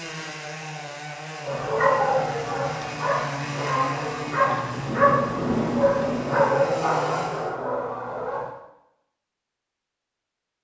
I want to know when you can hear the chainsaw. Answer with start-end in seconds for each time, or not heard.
0.0-7.5.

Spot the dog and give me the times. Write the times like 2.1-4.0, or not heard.
1.4-8.5.